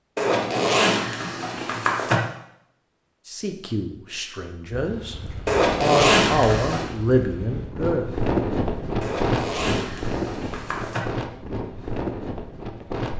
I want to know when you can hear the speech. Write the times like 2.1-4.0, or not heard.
3.2-5.2, 5.8-8.1.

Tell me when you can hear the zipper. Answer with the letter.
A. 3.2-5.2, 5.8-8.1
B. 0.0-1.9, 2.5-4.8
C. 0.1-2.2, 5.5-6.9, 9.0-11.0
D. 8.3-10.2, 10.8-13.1
C.